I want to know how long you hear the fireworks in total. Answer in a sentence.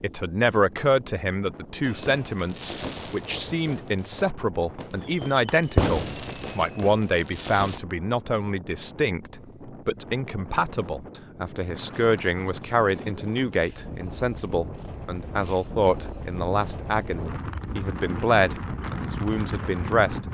You can hear the fireworks for 6 seconds altogether.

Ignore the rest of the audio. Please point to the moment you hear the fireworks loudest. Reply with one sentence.
The volume of the fireworks peaks at 6 seconds.